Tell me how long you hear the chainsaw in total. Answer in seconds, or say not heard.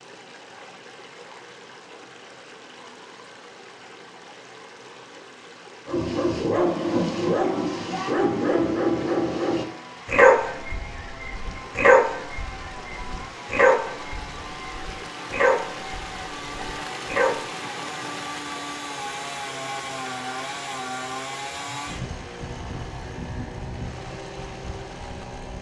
19 s.